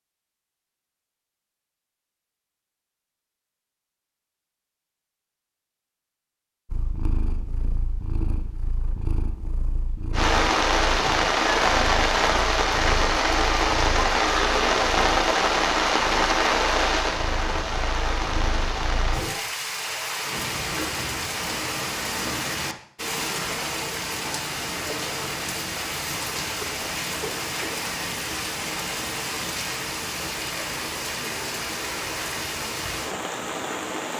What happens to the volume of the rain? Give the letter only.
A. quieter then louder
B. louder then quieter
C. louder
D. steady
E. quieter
E.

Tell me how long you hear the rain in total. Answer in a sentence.
You can hear the rain for 24 seconds altogether.